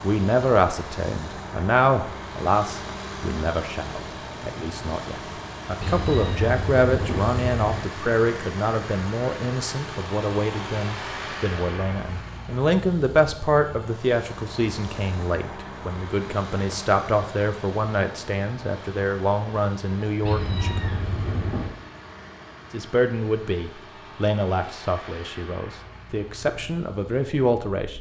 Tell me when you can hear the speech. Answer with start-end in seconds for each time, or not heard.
0.0-20.8, 22.7-27.9.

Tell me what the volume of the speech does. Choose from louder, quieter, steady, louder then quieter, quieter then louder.
steady.